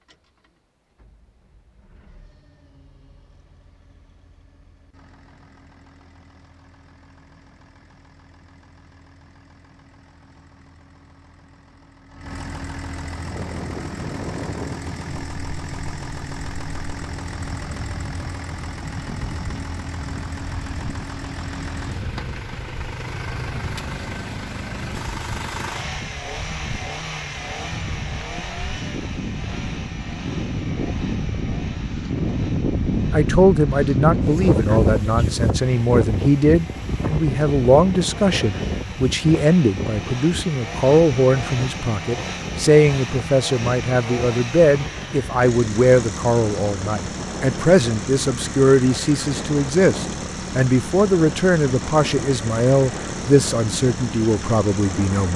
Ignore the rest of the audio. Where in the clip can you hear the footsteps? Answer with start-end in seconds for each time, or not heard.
not heard.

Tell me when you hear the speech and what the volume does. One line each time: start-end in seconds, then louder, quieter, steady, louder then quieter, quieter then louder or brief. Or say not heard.
33.1-55.3 steady.